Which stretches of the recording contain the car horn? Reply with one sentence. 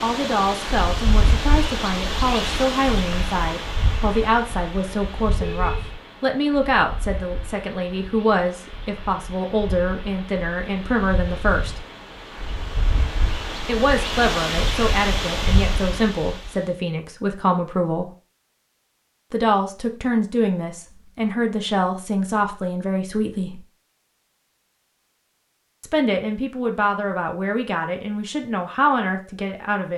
You can hear the car horn from 5.3 to 6.0 s.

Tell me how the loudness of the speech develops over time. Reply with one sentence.
The loudness of the speech stays about the same.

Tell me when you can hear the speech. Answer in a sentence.
The speech can be heard from 0.0 to 11.7 s, from 13.7 to 18.1 s, from 19.3 to 23.6 s and from 25.8 to 29.9 s.